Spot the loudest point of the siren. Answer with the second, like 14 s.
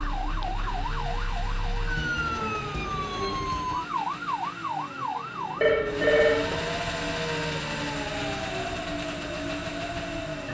4 s.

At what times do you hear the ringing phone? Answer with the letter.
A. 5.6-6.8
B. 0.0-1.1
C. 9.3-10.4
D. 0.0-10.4
A.